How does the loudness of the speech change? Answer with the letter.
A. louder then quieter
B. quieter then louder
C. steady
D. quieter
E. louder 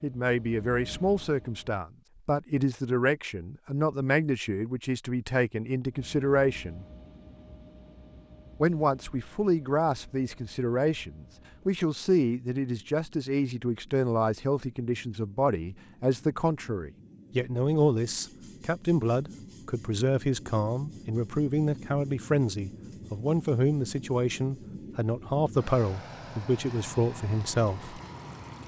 C.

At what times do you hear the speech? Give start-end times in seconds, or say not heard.
0.0-6.8, 8.6-28.0.